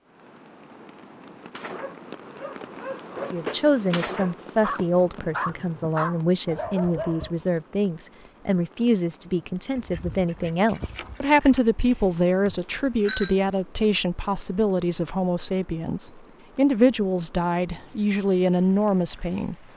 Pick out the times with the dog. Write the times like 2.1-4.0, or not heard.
1.5-7.5.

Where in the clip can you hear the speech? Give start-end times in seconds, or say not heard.
3.3-19.6.